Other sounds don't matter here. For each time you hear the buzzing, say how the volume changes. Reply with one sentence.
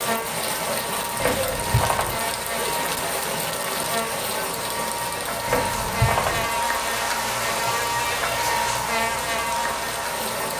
The buzzing can be heard from 0.0 to 10.5 s, getting louder.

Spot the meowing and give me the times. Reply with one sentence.
The meowing can be heard from 1.2 to 2.2 s and from 5.5 to 6.5 s.